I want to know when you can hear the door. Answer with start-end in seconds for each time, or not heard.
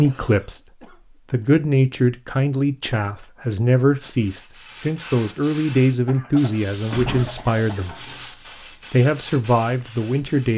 6.9-8.2.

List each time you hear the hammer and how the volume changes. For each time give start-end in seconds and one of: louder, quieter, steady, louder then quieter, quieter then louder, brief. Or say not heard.
not heard.